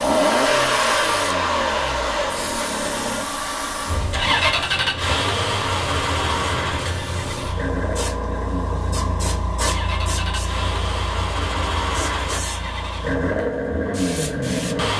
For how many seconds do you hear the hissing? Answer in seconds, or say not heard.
15 s.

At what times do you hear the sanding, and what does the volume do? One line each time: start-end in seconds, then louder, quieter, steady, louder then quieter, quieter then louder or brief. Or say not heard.
not heard.